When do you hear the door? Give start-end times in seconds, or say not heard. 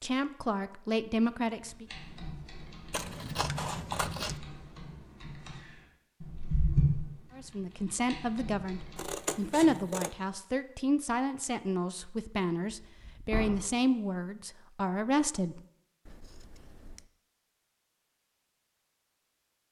12.8-13.6.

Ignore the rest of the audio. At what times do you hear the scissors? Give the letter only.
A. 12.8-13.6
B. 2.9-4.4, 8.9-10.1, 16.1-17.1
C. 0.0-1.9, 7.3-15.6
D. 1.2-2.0
B.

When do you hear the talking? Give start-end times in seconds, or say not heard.
0.0-1.9, 7.3-15.6.